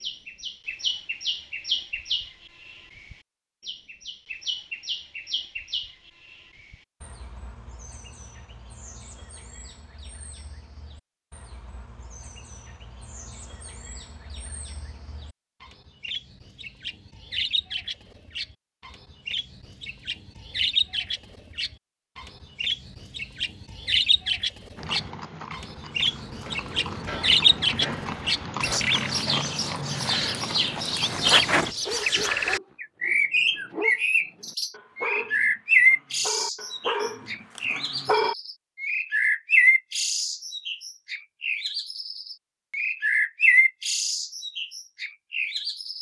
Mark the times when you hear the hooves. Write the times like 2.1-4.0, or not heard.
24.8-31.8.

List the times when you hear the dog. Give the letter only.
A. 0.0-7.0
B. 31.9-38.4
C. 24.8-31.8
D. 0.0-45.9
B.